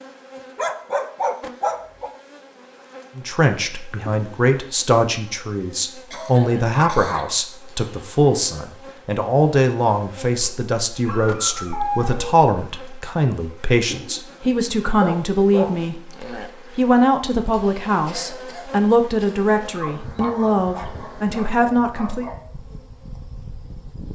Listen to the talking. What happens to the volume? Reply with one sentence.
The loudness of the talking stays about the same.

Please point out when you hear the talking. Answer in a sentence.
The talking can be heard from 3.1 to 22.2 s.